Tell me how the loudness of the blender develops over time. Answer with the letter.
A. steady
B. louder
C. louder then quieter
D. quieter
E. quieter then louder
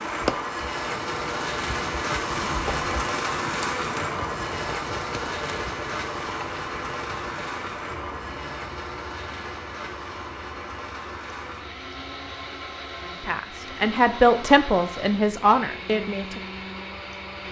D.